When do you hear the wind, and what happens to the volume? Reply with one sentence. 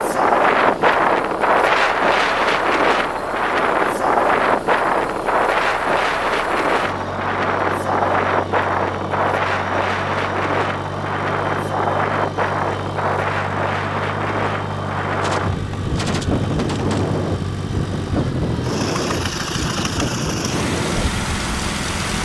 You can hear the wind from 0.0 to 22.1 s, getting quieter.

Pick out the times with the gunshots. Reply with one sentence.
You can hear the gunshots from 15.2 to 17.1 s.